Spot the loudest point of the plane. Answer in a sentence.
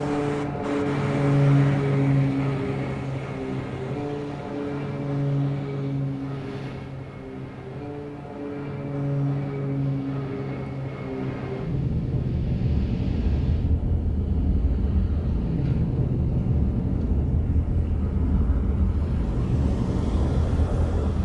The volume of the plane peaks at 2 seconds.